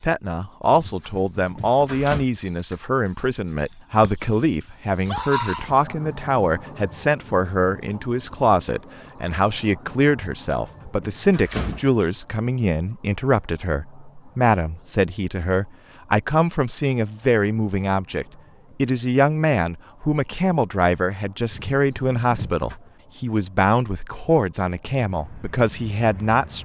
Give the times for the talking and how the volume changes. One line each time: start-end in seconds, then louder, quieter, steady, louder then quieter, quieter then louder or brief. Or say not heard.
0.0-26.6 steady.